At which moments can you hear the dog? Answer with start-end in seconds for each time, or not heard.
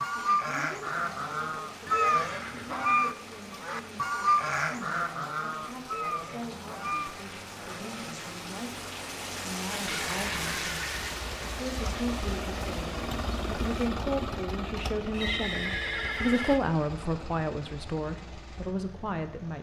not heard.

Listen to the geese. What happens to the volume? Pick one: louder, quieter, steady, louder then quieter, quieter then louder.
louder then quieter.